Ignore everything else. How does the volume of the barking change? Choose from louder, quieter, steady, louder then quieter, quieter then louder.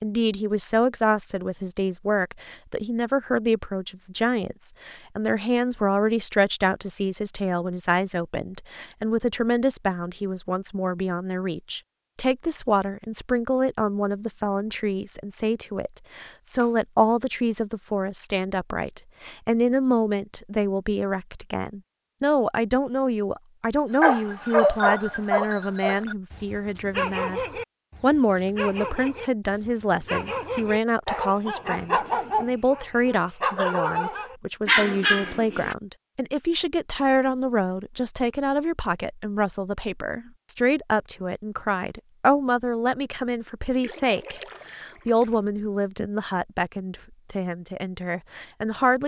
quieter then louder.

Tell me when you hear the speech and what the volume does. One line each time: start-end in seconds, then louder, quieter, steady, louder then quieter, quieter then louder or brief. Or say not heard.
0.0-49.0 steady.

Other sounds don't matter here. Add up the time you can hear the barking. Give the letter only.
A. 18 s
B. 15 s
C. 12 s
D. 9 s
C.